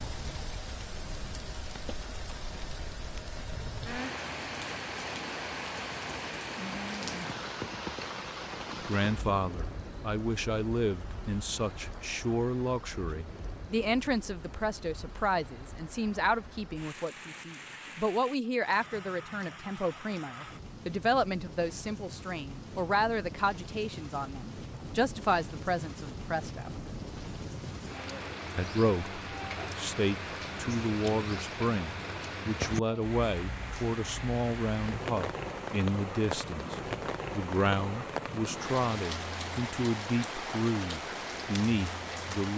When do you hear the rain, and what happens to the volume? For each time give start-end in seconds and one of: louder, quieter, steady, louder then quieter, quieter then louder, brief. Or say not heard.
0.0-42.5 quieter then louder.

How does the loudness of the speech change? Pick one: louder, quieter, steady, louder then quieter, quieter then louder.
steady.